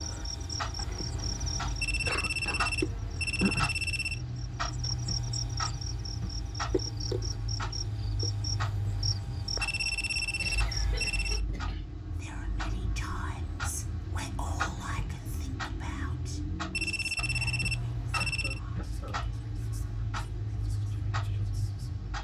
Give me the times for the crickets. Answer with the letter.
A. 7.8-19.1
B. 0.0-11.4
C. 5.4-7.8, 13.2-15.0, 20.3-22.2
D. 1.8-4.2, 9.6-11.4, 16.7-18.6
B.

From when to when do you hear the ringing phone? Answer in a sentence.
The ringing phone can be heard from 1.8 to 4.2 s, from 9.6 to 11.4 s and from 16.7 to 18.6 s.